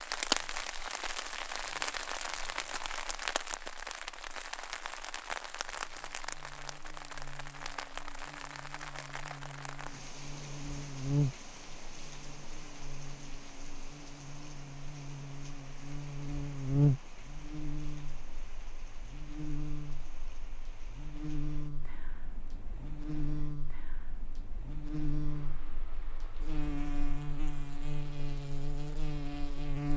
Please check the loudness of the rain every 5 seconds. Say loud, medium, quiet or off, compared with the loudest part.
loud, medium, quiet, quiet, quiet, quiet.